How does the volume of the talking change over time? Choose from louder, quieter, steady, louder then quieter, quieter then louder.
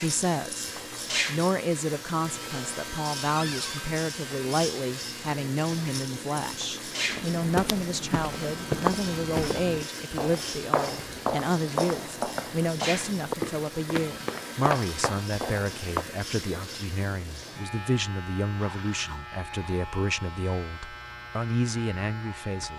steady.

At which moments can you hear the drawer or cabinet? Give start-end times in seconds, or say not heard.
3.4-3.8.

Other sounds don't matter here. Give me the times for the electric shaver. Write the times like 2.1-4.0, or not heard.
0.0-22.7.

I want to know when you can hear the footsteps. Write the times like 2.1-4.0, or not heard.
7.0-16.1.